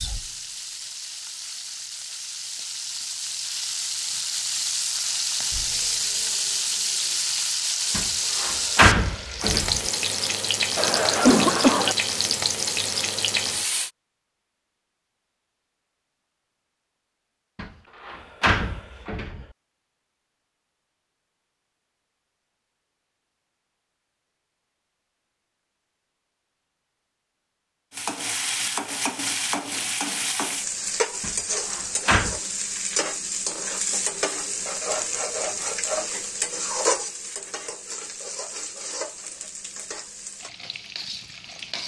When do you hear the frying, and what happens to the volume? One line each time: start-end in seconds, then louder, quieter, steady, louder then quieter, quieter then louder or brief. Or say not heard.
0.0-13.9 louder
27.9-41.8 quieter.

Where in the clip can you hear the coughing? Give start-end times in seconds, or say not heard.
10.8-11.9.